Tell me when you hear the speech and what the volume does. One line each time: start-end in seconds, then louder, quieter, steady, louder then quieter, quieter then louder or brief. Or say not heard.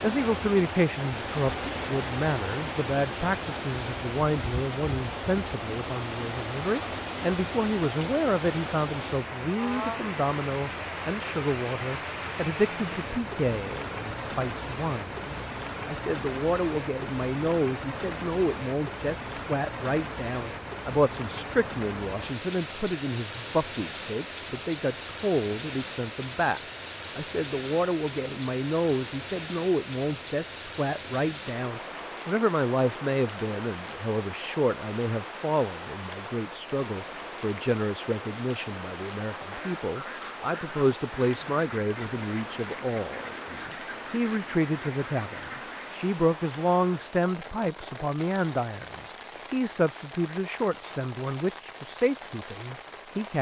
0.0-53.3 steady.